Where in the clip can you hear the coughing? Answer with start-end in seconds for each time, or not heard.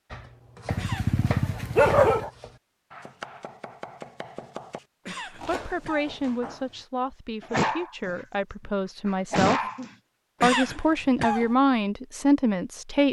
0.8-1.2, 5.0-6.2, 10.4-11.6.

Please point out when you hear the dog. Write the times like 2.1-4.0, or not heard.
0.7-2.3, 7.4-8.2, 9.1-9.9.